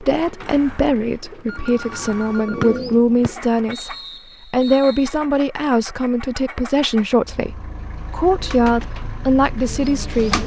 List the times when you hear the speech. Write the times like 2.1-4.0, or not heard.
0.0-10.4.